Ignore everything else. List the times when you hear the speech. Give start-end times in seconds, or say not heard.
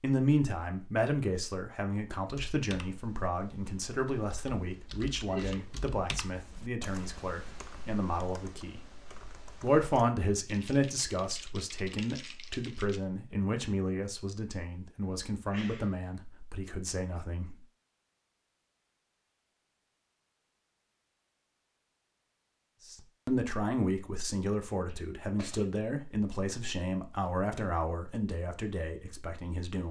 0.0-8.8, 9.6-17.6, 22.9-29.8.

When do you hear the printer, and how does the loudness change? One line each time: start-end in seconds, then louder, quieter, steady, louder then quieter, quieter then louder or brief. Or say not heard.
not heard.